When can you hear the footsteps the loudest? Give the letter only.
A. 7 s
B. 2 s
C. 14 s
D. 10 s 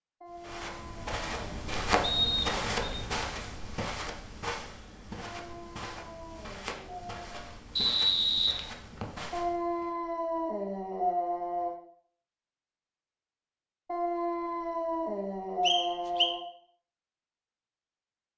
B.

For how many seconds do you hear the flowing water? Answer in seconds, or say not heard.
not heard.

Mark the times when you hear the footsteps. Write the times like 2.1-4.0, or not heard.
0.3-9.9.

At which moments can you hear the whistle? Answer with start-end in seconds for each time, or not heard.
2.0-3.0, 7.8-9.1, 15.7-16.3.